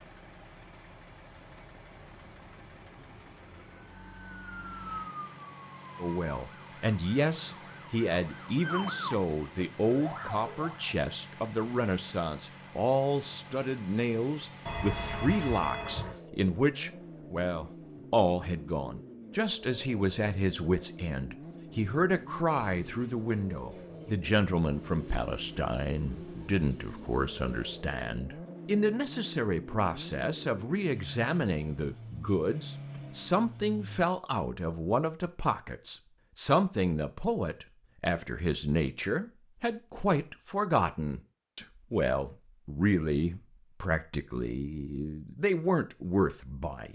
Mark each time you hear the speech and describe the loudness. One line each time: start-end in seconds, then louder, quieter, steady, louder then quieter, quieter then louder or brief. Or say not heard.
6.0-46.9 steady.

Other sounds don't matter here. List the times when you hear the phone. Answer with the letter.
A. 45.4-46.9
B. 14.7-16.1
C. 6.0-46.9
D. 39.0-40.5
B.